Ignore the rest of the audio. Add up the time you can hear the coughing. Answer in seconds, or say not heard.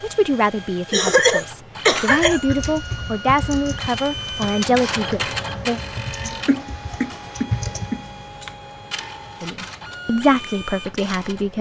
3 s.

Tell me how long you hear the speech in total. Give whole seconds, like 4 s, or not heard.
8 s.